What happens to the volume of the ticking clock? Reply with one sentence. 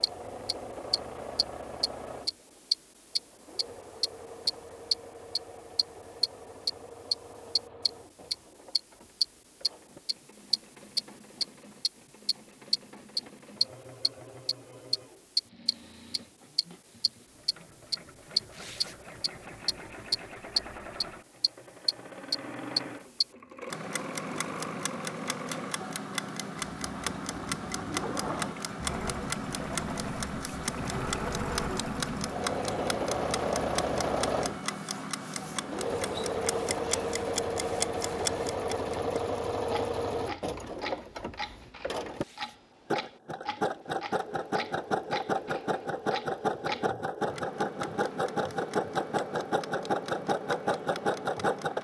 The volume of the ticking clock goes down.